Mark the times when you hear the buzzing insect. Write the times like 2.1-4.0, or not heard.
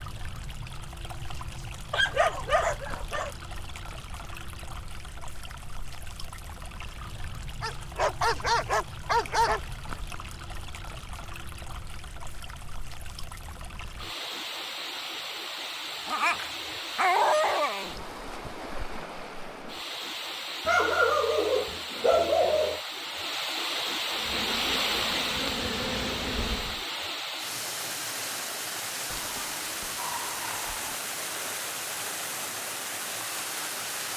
24.1-26.9.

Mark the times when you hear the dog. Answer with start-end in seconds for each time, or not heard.
1.9-3.3, 7.6-9.6, 16.1-18.0, 20.6-22.8, 29.1-30.9.